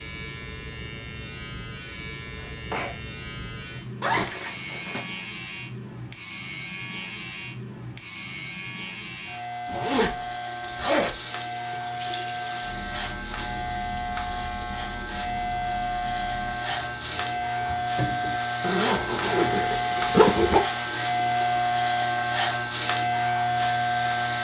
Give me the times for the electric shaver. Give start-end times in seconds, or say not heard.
0.0-24.3.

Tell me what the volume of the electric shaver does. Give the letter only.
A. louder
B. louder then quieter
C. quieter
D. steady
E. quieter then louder
A.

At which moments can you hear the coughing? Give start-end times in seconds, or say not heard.
2.4-3.0.